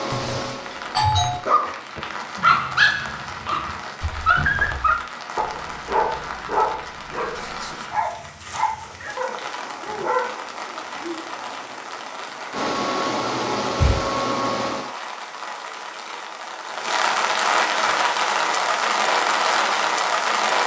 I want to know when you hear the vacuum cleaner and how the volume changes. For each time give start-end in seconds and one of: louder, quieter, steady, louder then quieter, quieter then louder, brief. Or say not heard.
0.0-2.0 brief
8.8-14.9 louder.